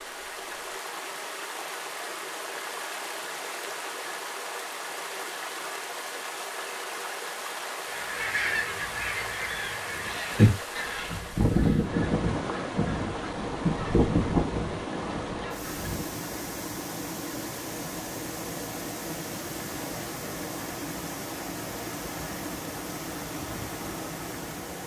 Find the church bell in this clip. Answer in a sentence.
The church bell can't be heard in this clip.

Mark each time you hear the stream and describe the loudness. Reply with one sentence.
You can hear the stream from 0.0 to 24.8 s, at a steady volume.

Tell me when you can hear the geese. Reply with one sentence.
The geese can be heard from 7.8 to 16.1 s.